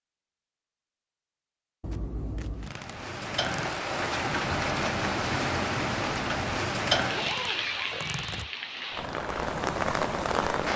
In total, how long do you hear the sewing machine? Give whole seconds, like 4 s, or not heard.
not heard.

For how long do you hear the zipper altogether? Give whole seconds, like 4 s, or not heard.
2 s.